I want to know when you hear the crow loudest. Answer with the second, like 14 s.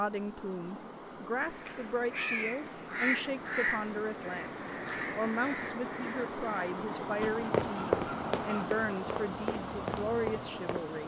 3 s.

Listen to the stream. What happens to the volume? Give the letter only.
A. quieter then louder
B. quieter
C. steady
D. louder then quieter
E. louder
E.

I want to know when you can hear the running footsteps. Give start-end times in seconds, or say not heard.
7.2-11.0.